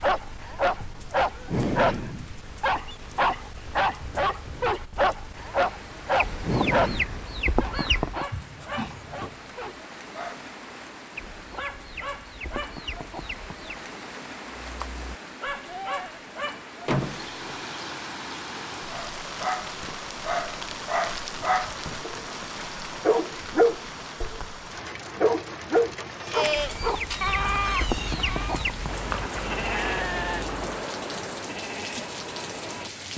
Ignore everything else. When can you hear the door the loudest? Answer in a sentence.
The volume of the door peaks at 17 seconds.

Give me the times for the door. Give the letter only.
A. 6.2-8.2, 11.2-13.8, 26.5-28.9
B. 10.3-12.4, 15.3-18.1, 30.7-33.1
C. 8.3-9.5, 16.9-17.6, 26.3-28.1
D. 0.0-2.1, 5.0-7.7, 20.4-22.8
C.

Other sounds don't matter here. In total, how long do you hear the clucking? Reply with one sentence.
The clucking can be heard for 7 seconds in total.